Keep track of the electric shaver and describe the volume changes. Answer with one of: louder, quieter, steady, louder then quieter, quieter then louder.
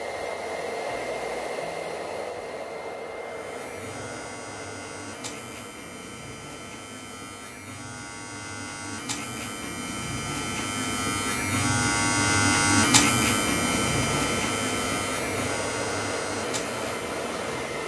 louder then quieter.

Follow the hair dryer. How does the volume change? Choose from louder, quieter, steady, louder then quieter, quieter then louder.
quieter then louder.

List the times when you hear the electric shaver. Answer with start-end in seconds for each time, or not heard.
3.1-17.8.